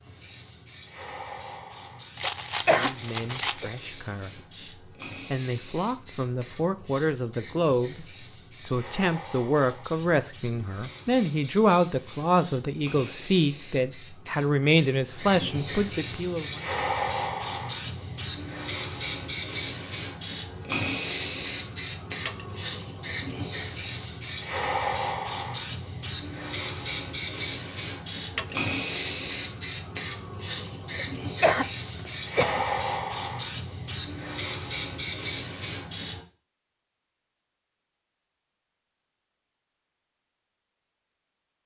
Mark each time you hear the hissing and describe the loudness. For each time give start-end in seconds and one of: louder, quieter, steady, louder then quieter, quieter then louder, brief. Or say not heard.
0.0-36.2 louder.